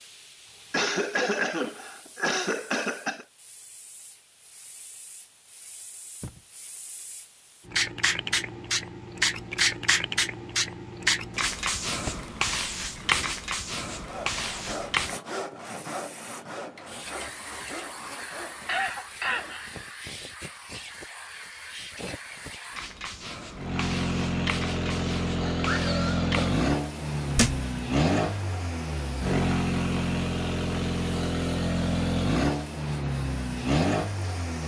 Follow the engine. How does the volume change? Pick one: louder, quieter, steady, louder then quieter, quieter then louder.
steady.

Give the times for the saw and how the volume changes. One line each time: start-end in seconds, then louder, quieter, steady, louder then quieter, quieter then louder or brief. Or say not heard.
13.9-19.8 quieter.